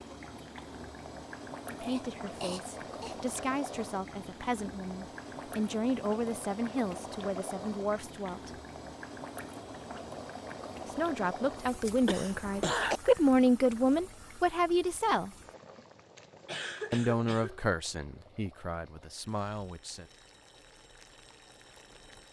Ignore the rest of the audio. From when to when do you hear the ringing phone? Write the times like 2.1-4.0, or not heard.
not heard.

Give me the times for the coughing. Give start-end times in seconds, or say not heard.
1.8-3.1, 12.1-13.0, 16.4-17.6.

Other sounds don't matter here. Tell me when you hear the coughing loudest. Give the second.
13 s.